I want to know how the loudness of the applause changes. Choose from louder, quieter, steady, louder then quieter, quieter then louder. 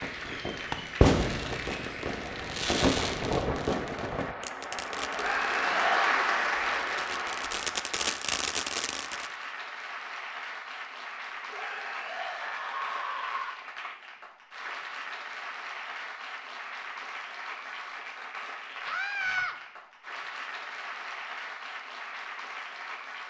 louder then quieter.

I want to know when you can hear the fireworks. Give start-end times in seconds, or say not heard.
0.0-9.3.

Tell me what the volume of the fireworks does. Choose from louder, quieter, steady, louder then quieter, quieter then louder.
quieter then louder.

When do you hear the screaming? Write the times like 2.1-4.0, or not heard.
5.2-6.0, 11.5-13.6, 18.9-19.6.